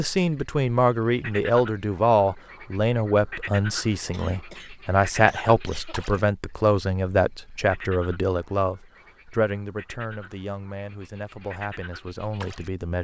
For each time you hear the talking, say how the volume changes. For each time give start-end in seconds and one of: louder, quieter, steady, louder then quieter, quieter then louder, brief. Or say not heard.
0.0-12.9 quieter.